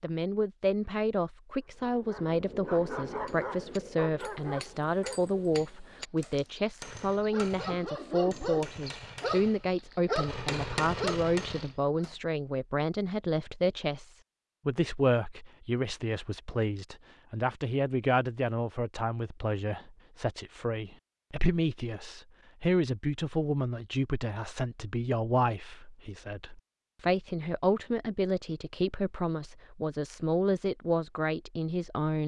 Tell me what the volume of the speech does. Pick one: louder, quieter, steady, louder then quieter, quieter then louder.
steady.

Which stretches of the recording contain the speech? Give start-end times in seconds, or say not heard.
0.0-32.2.